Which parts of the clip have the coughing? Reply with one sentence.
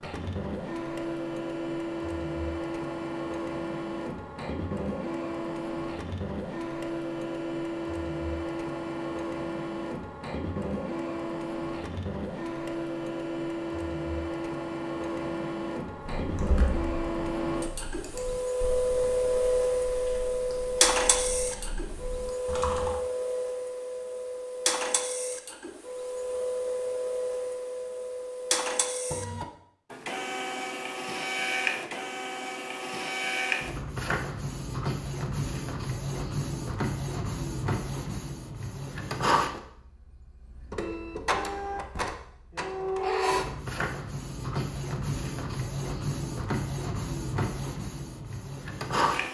The coughing can't be heard in this clip.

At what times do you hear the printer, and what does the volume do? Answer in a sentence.
The printer can be heard from 0.0 to 49.2 s, at a steady volume.